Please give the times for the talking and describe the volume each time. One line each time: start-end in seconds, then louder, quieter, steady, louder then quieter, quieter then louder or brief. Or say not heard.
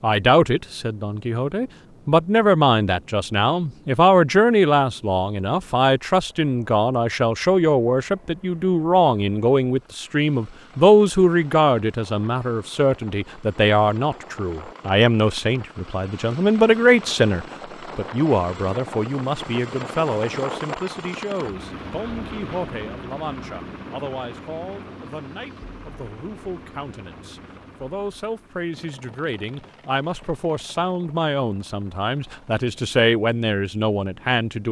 0.0-34.6 quieter then louder.